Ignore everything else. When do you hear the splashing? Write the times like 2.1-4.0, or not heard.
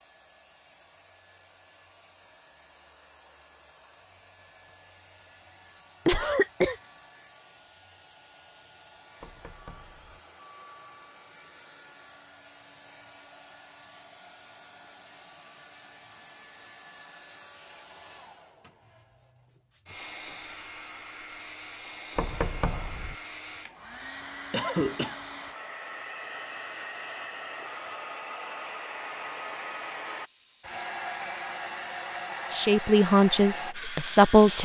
not heard.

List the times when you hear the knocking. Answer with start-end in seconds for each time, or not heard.
9.2-10.2, 22.1-23.1.